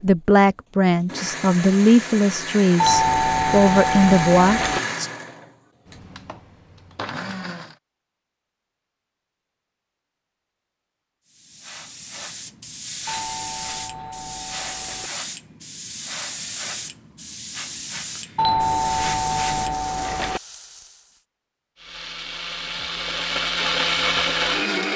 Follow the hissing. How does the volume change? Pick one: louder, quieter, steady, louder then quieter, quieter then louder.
steady.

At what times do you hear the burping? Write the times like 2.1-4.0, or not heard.
not heard.